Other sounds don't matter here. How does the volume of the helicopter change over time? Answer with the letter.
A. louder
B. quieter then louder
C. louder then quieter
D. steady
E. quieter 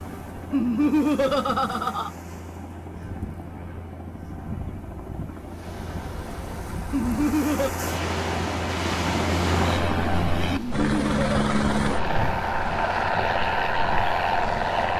A.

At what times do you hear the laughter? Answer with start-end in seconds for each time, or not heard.
0.5-2.1, 6.9-7.7, 10.5-11.6.